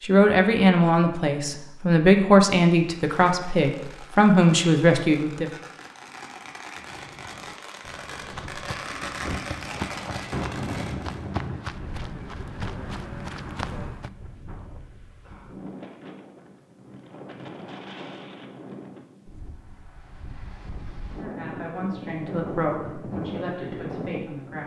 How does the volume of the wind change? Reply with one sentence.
The loudness of the wind goes down, then up.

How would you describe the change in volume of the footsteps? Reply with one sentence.
The volume of the footsteps goes up.